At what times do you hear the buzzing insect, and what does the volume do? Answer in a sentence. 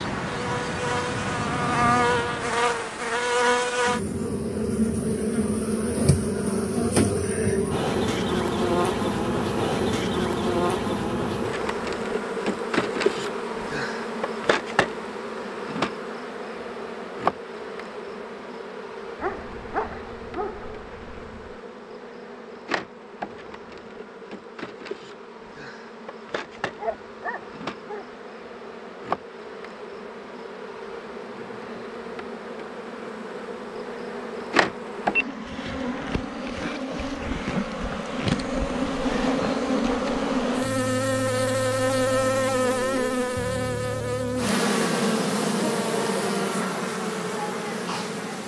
You can hear the buzzing insect from 0.0 to 48.4 s, getting quieter then louder.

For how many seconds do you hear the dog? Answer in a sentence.
You can hear the dog for 4 seconds altogether.